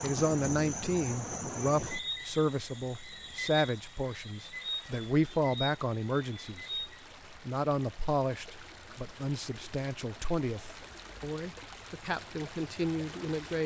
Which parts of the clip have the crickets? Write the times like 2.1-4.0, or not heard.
0.0-7.0.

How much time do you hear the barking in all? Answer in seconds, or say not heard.
not heard.